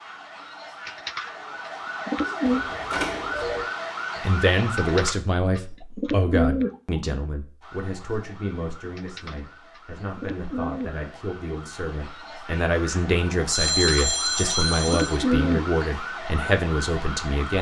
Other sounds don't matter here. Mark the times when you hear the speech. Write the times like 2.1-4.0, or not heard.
4.2-17.5.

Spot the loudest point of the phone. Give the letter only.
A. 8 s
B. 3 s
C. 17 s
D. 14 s
D.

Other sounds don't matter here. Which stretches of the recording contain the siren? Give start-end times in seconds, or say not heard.
0.0-5.2, 7.6-17.5.